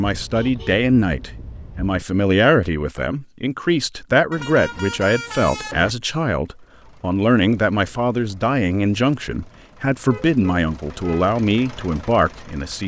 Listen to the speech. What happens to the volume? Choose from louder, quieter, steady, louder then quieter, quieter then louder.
steady.